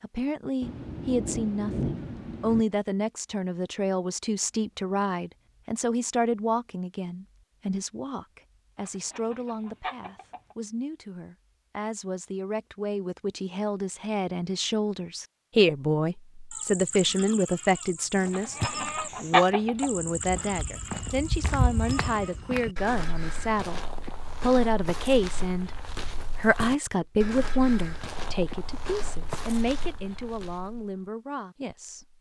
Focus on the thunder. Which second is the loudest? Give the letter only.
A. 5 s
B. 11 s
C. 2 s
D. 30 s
C.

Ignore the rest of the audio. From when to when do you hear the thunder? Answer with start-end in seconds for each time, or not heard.
0.6-2.6.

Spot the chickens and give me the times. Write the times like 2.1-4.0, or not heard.
8.8-10.6, 18.2-19.9.